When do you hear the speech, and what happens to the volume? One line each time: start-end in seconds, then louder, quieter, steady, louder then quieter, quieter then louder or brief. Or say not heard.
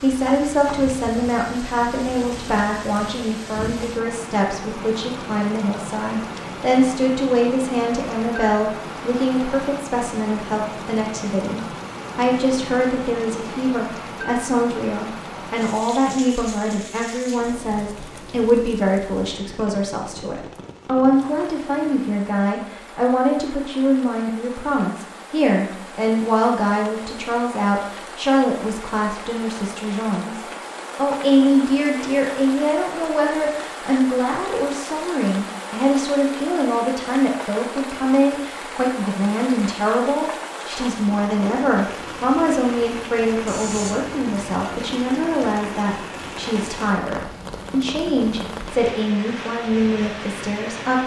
0.0-51.0 steady.